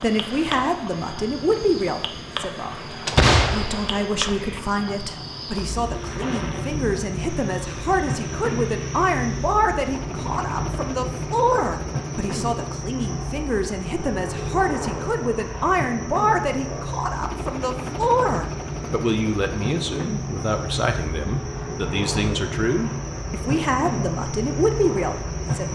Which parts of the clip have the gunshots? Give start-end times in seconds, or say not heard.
3.0-4.6.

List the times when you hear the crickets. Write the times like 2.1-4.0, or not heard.
0.0-25.6.